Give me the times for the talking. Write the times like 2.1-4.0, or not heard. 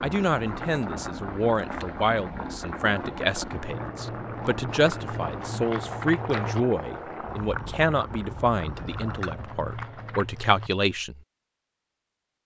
0.0-11.2.